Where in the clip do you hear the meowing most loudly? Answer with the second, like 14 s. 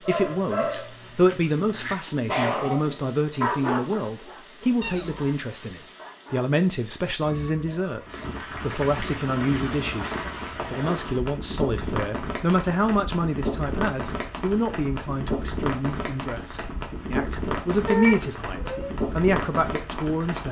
18 s.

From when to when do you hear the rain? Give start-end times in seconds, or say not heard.
0.0-20.4.